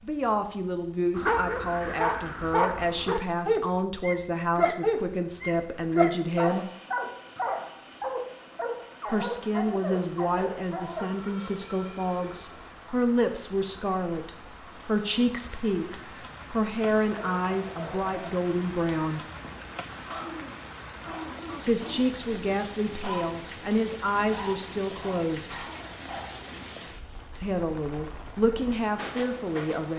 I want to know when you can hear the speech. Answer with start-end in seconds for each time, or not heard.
0.0-6.7, 9.1-19.2, 21.6-25.6, 27.3-29.9.